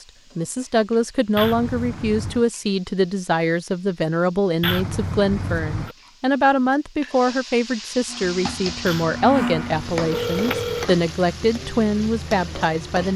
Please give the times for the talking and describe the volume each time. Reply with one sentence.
The talking can be heard from 0.3 to 13.1 s, at a steady volume.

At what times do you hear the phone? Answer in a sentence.
You can hear the phone from 1.4 to 2.5 s, from 4.6 to 6.0 s and from 8.8 to 10.8 s.